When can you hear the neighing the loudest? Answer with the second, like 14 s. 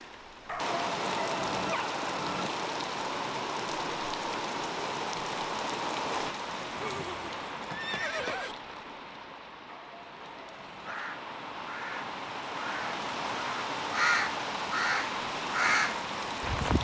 8 s.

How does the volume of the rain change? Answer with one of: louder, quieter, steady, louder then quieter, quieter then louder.
quieter then louder.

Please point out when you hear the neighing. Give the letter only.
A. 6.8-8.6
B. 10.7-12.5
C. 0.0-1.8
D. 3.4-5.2
A.